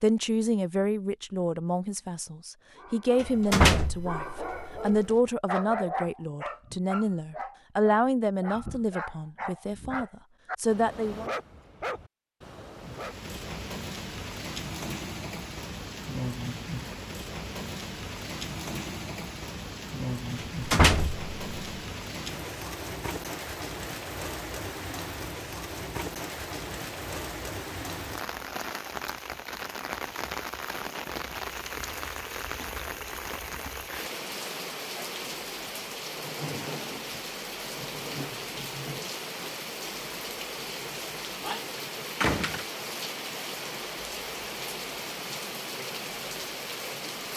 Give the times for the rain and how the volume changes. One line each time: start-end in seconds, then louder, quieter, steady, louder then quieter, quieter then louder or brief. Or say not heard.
12.8-47.3 steady.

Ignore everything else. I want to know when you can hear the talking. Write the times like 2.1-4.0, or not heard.
0.0-11.3.